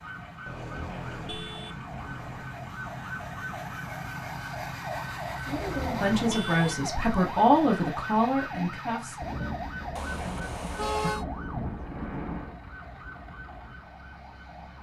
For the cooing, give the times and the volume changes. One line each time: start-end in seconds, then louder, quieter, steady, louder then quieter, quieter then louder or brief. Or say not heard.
not heard.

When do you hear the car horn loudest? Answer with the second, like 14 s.
11 s.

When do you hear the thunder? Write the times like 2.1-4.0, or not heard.
9.2-12.6.